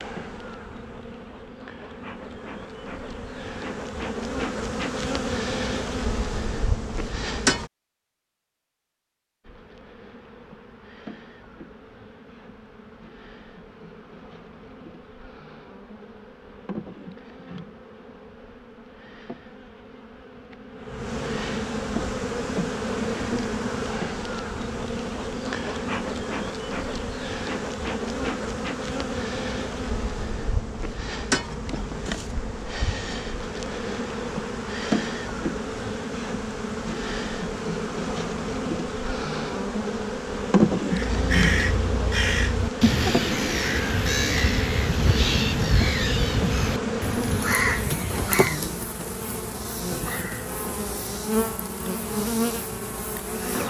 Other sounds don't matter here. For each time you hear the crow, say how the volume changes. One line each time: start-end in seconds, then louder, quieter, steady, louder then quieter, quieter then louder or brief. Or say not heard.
40.9-48.6 steady.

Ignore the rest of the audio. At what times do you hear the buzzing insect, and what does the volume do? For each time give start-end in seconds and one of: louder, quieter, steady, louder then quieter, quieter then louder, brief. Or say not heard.
0.0-7.7 louder
9.4-53.6 louder.